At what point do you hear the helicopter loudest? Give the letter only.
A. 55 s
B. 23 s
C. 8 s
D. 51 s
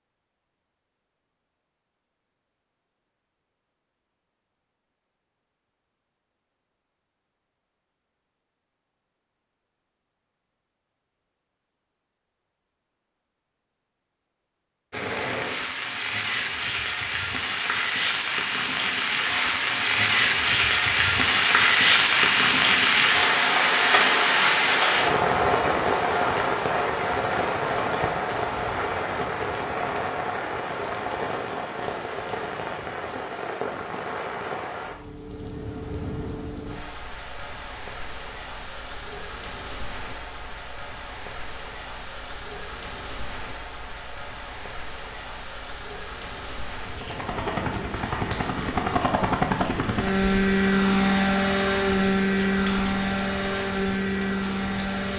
D.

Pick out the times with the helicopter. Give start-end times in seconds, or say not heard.
46.9-55.1.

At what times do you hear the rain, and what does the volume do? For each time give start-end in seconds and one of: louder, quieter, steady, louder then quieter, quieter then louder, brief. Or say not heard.
14.9-55.1 quieter.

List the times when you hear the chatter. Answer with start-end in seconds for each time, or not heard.
not heard.